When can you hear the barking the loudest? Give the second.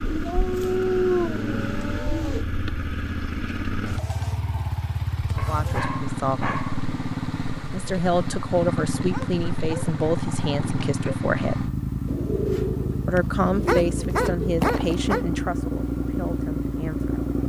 1 s.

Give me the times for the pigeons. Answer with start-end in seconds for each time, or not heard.
0.1-2.5, 12.1-14.3.